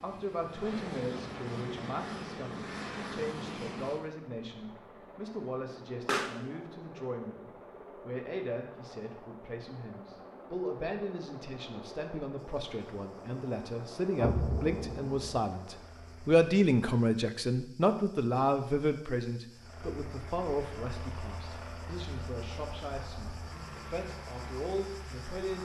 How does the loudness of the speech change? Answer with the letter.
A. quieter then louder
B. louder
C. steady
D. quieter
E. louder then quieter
E.